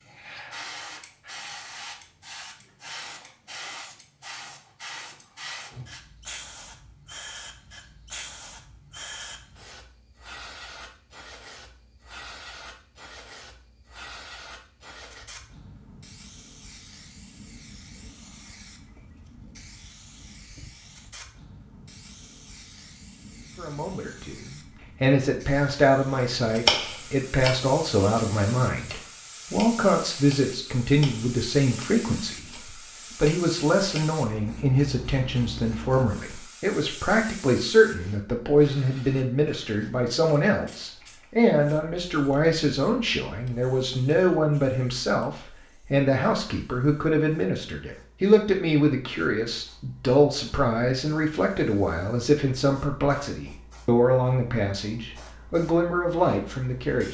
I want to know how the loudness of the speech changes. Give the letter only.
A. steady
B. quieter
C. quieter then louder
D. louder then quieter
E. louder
A.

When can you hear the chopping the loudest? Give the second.
27 s.